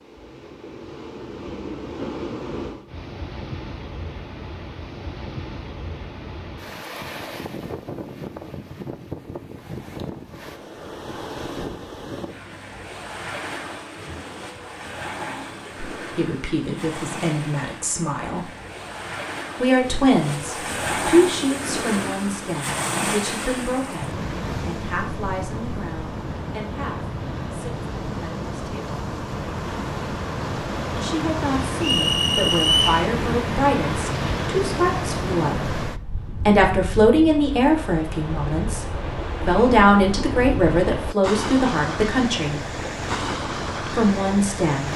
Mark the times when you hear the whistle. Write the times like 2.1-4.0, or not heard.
31.8-33.0.